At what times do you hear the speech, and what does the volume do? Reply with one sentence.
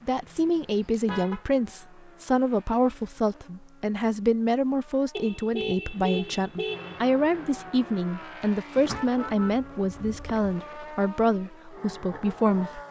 The speech can be heard from 0.1 to 12.8 s, at a steady volume.